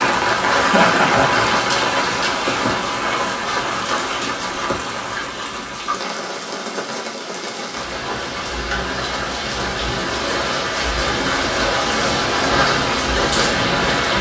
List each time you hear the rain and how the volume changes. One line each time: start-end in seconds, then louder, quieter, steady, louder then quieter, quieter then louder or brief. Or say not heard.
0.0-14.1 quieter then louder.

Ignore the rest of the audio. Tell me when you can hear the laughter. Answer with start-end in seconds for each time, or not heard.
0.5-1.4.